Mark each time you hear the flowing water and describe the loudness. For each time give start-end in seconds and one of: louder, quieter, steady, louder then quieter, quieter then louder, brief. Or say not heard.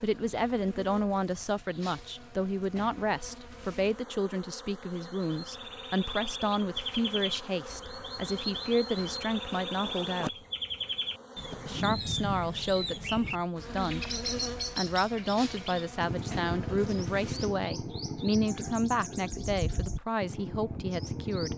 not heard.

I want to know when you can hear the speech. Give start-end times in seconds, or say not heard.
0.0-10.3, 11.7-14.1, 14.8-21.5.